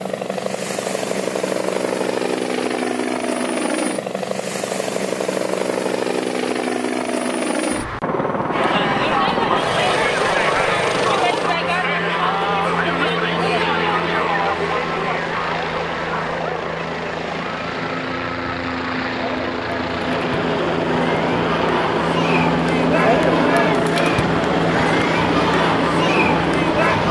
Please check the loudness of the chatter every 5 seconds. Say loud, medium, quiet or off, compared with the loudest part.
off, loud, loud, medium, loud, loud.